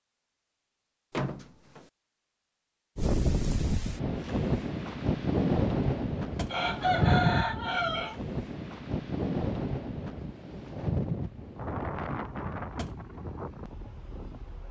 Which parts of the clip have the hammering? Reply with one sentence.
The hammering can't be heard in this clip.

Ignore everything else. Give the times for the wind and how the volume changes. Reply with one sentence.
The wind can be heard from 3.0 to 14.6 s, getting quieter.